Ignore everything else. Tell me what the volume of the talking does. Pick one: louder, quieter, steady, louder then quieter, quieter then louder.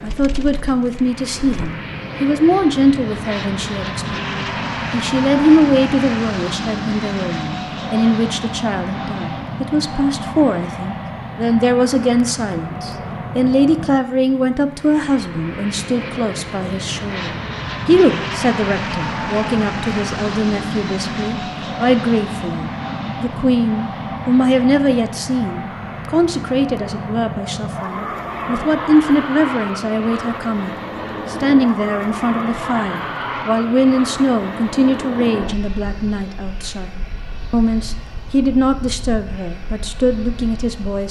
steady.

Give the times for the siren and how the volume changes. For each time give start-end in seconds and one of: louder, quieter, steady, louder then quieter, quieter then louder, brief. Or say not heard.
not heard.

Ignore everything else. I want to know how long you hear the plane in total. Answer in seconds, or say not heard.
41 s.